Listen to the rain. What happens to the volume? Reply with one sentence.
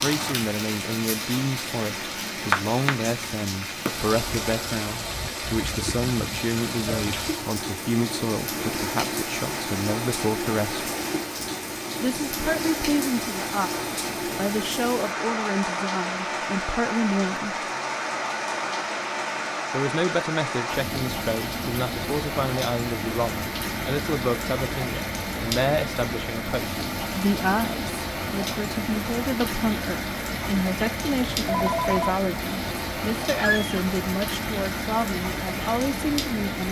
The volume of the rain stays about the same.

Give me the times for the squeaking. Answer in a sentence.
The squeaking can be heard from 33.4 to 33.8 s.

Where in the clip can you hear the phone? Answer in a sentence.
The phone can be heard from 31.1 to 32.1 s.